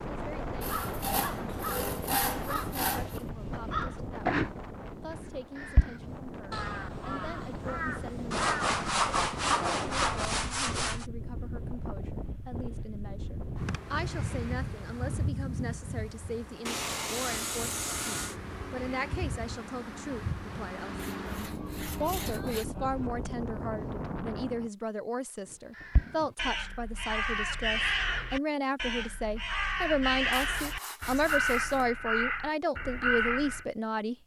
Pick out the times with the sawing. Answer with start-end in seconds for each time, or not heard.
0.6-3.2, 8.3-11.1, 16.6-18.4, 20.9-22.6, 30.3-31.9.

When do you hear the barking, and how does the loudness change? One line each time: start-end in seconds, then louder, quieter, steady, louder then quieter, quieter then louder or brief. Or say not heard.
not heard.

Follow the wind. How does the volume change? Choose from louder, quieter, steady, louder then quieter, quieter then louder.
steady.